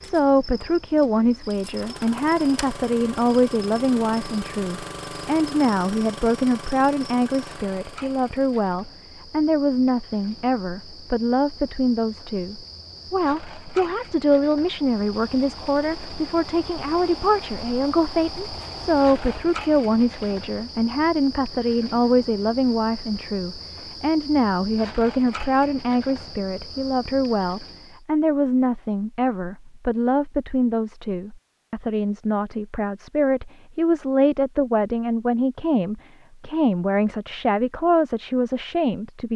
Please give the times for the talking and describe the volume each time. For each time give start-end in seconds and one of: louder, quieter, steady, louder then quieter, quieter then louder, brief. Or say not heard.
0.0-39.3 steady.